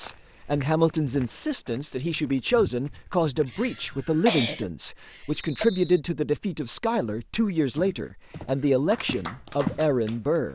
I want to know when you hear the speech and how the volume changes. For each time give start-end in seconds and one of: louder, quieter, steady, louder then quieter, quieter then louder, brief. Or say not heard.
0.0-10.5 steady.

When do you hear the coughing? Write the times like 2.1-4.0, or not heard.
3.5-5.7.